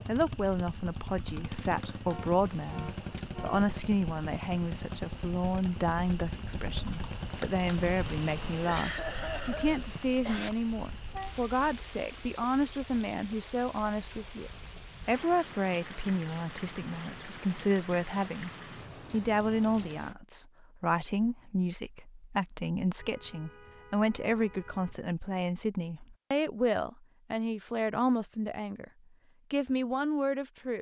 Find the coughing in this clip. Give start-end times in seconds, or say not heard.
8.6-10.5.